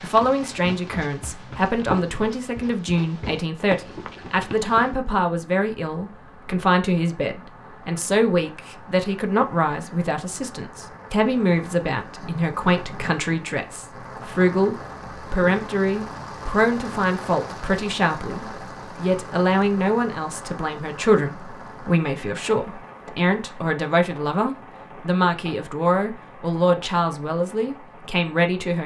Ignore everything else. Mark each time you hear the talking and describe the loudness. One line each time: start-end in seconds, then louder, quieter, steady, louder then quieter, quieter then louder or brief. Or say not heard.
0.0-28.8 steady.